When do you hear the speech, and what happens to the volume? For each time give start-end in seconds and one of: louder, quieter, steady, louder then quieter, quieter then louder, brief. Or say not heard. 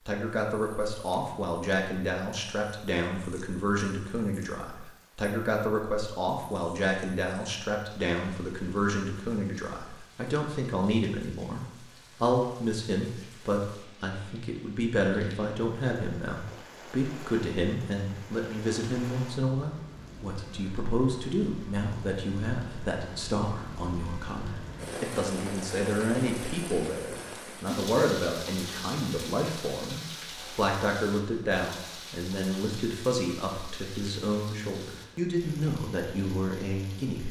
0.1-37.2 steady.